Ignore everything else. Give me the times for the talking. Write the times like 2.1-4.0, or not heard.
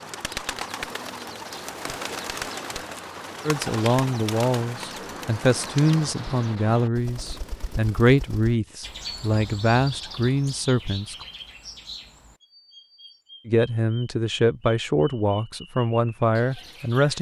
3.5-11.2, 13.4-17.1.